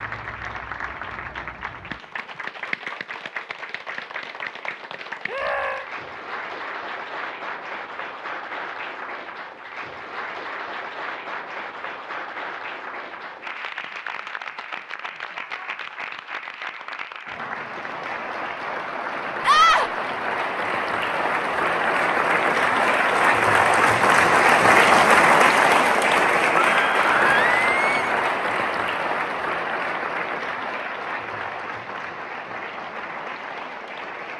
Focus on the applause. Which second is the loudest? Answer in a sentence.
The volume of the applause peaks at 25 seconds.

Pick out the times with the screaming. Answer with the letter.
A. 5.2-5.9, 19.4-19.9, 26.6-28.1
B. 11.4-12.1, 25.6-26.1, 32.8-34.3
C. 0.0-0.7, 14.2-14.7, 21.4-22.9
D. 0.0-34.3
A.